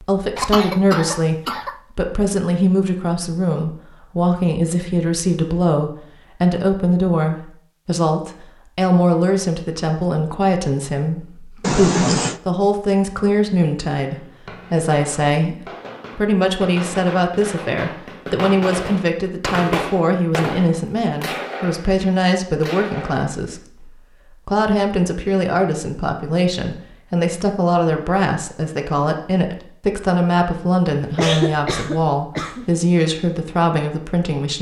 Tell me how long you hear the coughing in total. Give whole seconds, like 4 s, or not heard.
4 s.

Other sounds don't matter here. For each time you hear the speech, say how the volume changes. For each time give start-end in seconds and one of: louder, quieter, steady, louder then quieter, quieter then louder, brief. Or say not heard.
0.0-34.5 steady.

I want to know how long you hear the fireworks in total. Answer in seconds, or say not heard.
9 s.